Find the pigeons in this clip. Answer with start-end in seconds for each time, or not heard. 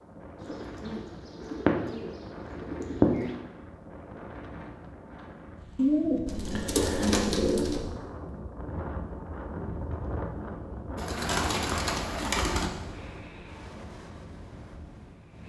0.4-3.4, 5.8-7.8, 10.9-12.7.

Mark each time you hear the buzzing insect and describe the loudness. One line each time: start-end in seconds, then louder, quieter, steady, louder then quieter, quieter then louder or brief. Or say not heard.
not heard.